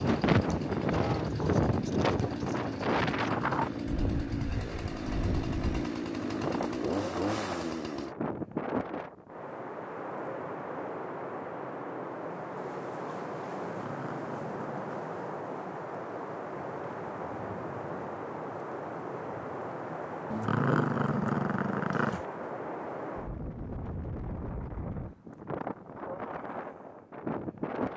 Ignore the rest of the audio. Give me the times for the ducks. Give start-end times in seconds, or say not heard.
not heard.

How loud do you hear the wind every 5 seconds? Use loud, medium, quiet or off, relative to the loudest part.
loud, medium, medium, medium, medium, medium.